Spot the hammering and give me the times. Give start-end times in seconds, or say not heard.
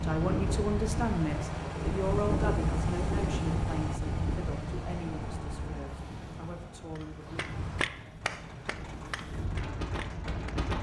7.0-10.7.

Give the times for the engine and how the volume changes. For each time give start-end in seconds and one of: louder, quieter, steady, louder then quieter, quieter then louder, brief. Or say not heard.
0.0-10.7 quieter.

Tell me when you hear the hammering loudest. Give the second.
8 s.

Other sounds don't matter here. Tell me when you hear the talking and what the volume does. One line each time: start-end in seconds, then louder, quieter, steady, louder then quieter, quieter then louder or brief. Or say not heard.
0.0-7.5 quieter.